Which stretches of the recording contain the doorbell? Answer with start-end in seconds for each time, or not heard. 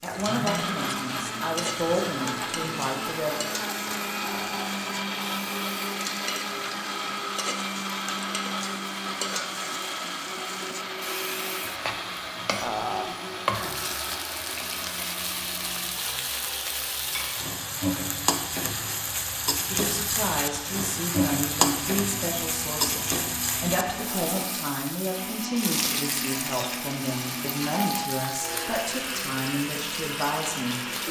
27.8-28.9.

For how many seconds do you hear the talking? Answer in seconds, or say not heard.
15 s.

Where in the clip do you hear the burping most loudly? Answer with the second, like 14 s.
13 s.